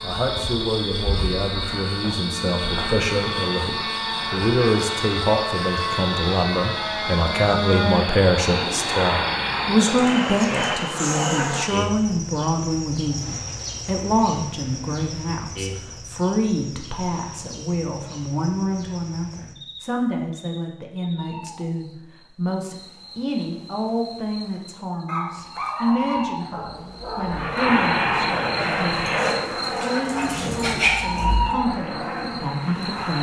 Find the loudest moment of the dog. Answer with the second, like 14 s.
31 s.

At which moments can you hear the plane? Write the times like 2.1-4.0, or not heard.
0.0-11.7, 27.3-33.1.